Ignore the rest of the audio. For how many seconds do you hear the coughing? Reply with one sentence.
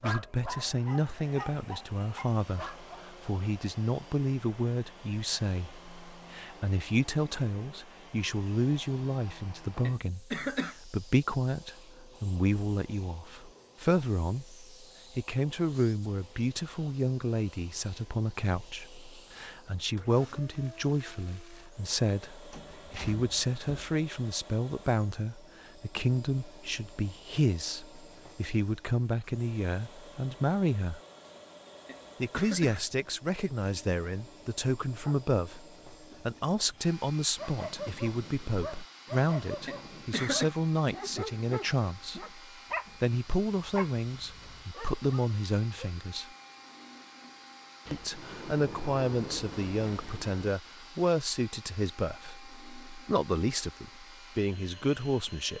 The coughing can be heard for 3 seconds in total.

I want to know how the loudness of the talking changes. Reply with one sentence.
The loudness of the talking stays about the same.